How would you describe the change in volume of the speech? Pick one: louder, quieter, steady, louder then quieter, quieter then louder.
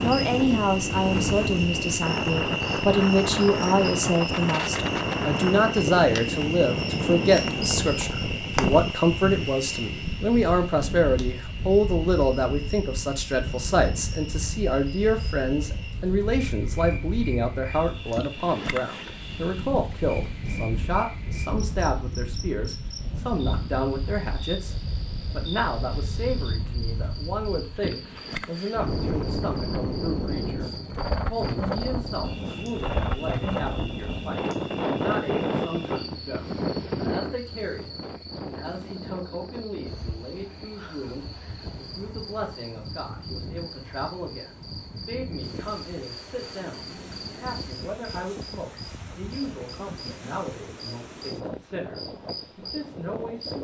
quieter.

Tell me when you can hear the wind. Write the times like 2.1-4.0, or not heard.
0.0-53.5.